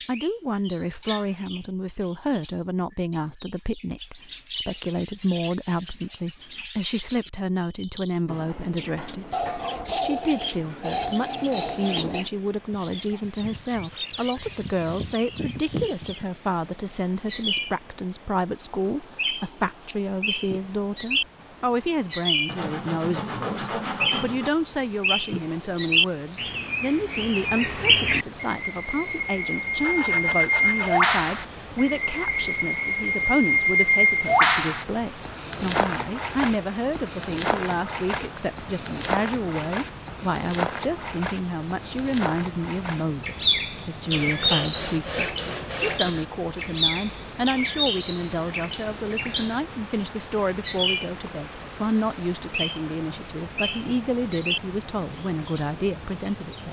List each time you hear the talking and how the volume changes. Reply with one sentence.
The talking can be heard from 0.1 to 56.6 s, at a steady volume.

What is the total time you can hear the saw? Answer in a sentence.
You can hear the saw for 8 seconds altogether.